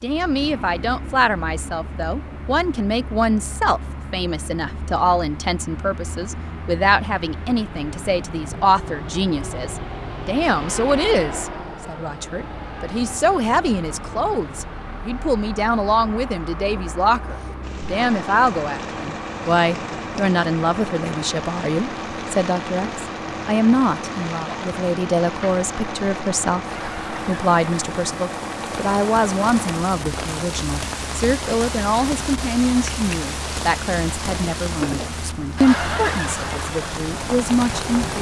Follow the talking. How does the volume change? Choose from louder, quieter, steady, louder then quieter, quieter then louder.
steady.